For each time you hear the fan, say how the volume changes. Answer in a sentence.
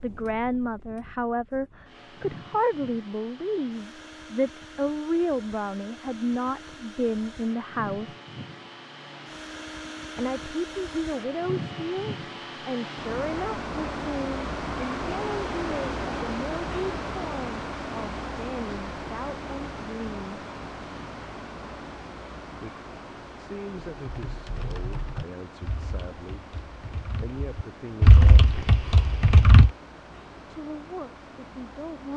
The fan can be heard from 0.0 to 32.1 s, getting louder then quieter.